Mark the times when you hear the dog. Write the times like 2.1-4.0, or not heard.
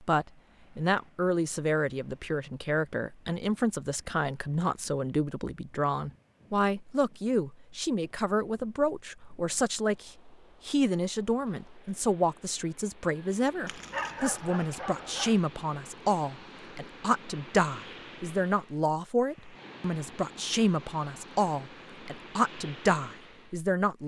13.7-15.4.